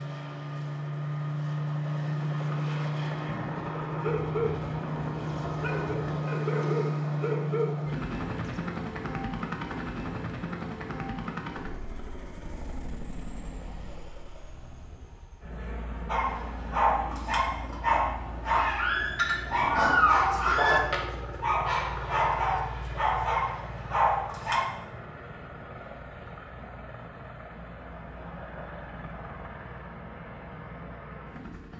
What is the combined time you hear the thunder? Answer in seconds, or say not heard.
4 s.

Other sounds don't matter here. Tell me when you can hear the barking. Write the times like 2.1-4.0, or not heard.
4.0-8.6, 16.1-24.6.